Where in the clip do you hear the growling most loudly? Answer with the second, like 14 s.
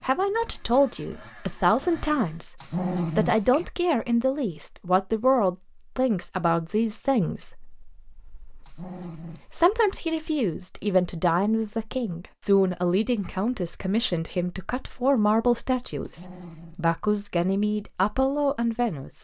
3 s.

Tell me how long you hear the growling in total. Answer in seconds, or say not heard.
3 s.